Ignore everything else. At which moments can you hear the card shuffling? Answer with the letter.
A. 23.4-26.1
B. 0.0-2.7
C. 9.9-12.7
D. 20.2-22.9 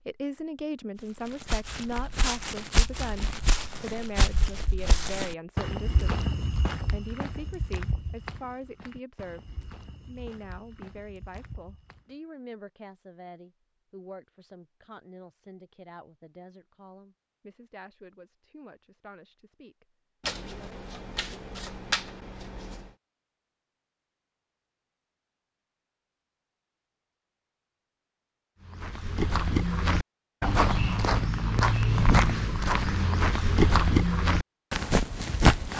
D.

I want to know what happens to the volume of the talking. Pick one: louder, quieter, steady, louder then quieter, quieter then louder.
quieter.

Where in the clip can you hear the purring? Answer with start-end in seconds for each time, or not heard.
not heard.